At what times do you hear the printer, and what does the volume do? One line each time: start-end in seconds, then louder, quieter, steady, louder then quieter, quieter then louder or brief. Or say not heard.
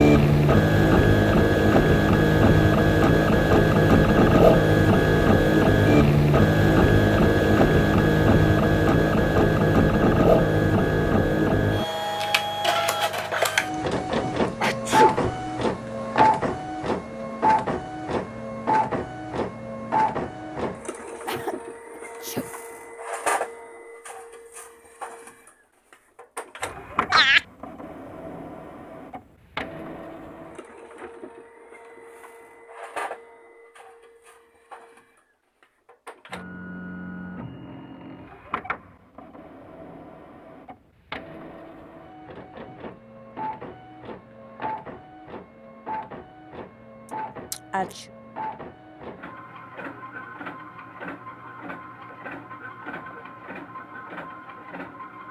0.0-55.2 quieter.